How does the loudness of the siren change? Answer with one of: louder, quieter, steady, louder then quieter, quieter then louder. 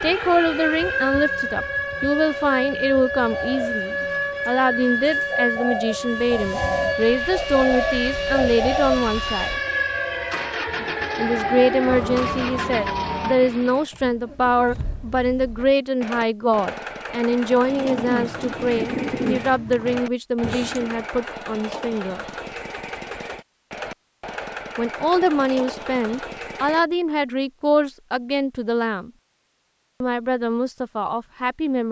steady.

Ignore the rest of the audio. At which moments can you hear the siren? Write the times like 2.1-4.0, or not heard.
0.0-13.4.